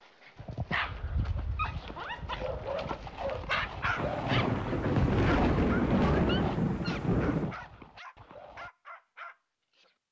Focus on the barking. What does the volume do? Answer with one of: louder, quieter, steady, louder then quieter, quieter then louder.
quieter.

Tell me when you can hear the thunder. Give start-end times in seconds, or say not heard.
4.0-7.5.